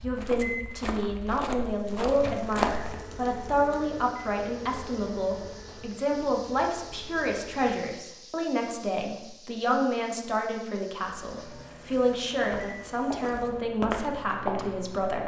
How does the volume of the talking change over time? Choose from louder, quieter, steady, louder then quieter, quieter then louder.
steady.